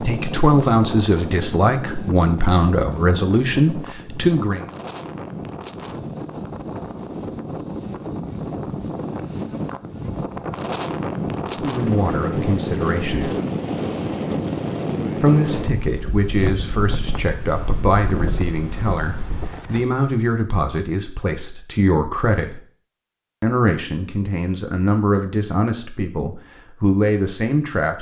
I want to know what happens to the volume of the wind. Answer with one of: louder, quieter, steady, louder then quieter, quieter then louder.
louder then quieter.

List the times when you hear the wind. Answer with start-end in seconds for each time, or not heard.
0.0-19.9.